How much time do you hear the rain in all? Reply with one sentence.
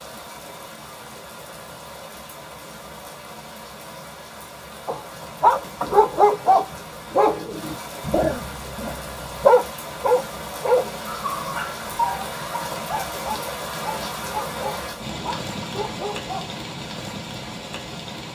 You can hear the rain for 18 seconds altogether.